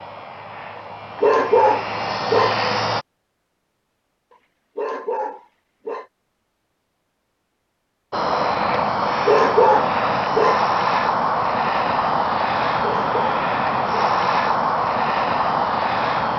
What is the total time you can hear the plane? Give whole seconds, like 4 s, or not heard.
11 s.